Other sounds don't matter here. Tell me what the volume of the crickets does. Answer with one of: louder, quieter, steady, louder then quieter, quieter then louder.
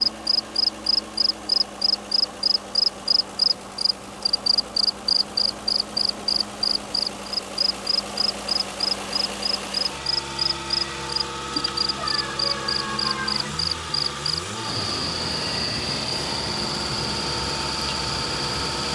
quieter.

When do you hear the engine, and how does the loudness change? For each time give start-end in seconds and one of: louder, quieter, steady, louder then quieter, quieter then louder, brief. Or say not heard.
0.0-18.9 louder.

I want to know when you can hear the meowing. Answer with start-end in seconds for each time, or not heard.
11.6-13.6.